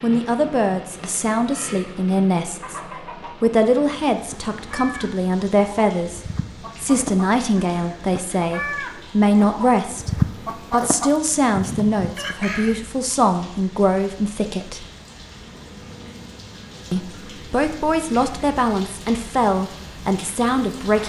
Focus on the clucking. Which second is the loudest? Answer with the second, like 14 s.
10 s.